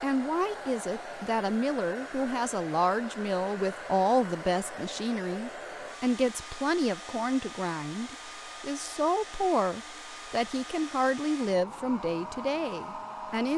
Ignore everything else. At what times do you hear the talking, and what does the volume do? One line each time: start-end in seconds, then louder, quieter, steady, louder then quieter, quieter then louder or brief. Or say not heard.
0.0-13.5 steady.